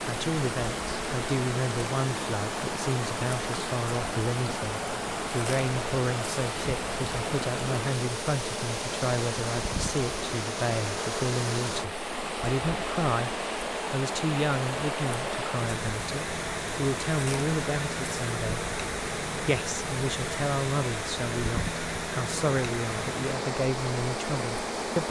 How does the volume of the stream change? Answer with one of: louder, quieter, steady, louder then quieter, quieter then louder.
steady.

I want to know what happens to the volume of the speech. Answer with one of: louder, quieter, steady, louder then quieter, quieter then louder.
steady.